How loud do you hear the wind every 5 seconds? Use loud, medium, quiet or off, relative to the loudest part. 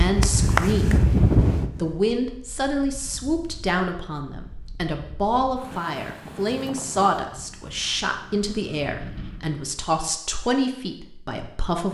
loud, quiet, off.